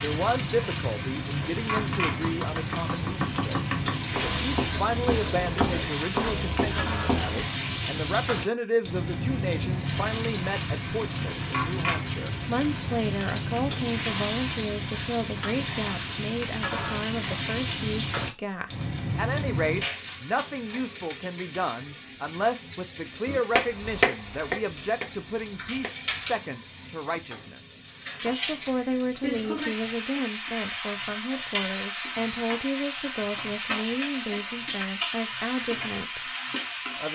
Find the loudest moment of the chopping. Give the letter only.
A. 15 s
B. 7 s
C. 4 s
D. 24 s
D.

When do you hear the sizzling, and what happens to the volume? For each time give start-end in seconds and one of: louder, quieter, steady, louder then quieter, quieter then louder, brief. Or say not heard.
0.0-37.1 steady.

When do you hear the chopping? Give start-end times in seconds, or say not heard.
1.8-7.5, 23.2-26.1.